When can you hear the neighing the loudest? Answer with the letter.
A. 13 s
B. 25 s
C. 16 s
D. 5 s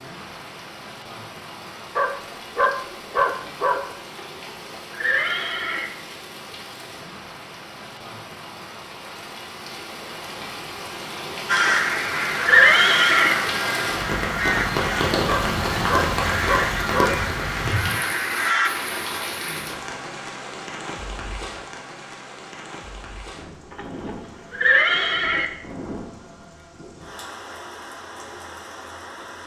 A.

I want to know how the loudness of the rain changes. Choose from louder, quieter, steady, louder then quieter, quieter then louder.
louder then quieter.